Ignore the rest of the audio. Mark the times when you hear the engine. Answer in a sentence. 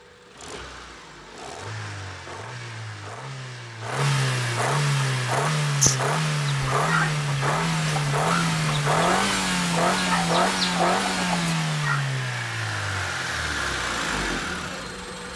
The engine can be heard from 0.0 to 15.3 s.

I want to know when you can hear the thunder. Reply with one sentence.
You can't hear the thunder here.